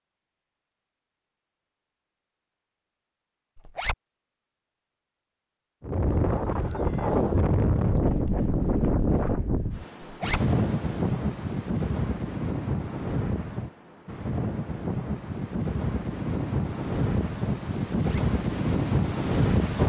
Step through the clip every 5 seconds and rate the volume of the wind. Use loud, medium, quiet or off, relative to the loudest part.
off, loud, loud, loud.